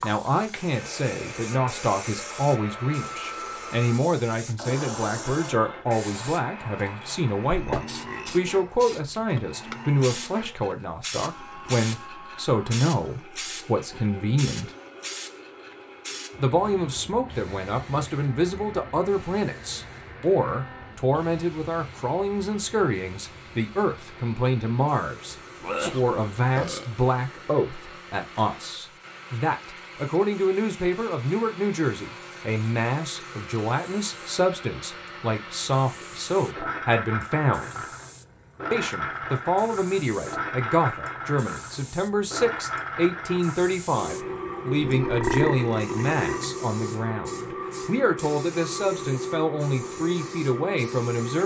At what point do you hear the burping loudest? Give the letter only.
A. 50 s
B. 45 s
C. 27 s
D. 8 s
B.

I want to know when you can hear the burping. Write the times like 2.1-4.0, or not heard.
7.5-8.4, 25.6-26.9, 44.8-46.5.